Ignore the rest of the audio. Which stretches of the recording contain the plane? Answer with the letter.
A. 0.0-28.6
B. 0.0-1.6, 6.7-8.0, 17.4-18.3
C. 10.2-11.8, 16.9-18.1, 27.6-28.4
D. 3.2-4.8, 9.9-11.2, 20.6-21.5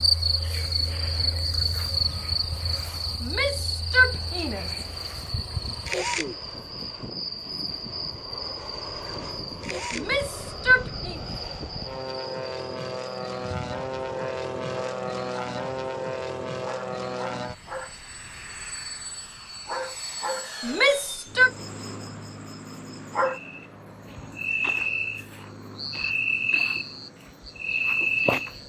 A.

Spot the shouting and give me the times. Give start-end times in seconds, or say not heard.
3.2-4.8, 9.9-11.2, 20.6-21.5.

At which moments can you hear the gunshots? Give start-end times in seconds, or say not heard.
not heard.